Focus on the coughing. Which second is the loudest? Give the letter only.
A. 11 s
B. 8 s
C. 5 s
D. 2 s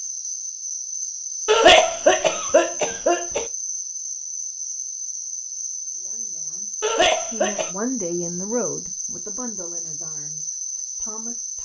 D.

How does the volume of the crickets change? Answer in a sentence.
The loudness of the crickets stays about the same.